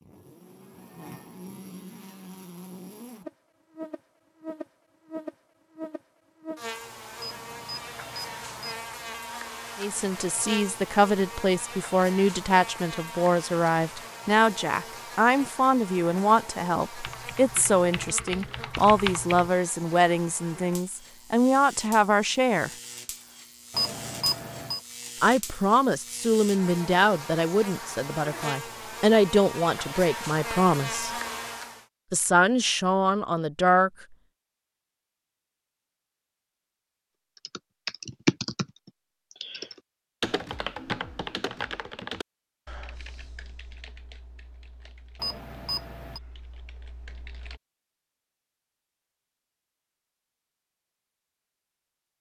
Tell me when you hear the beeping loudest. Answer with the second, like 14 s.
24 s.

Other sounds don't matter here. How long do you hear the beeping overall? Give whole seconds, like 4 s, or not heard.
4 s.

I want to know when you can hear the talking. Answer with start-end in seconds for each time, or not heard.
9.8-22.7, 25.2-31.1, 32.1-33.9.